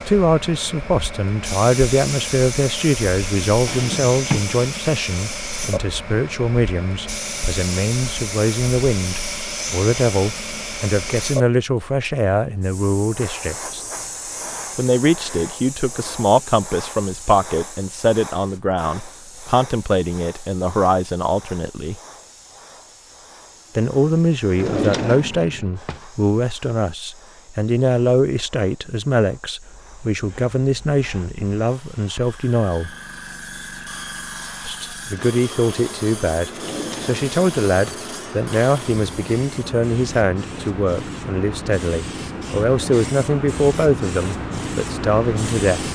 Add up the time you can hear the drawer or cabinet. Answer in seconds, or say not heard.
4 s.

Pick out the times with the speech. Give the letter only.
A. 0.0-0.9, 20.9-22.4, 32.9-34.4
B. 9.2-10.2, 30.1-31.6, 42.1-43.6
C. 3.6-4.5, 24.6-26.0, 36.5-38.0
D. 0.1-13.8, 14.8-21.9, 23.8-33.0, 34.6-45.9
D.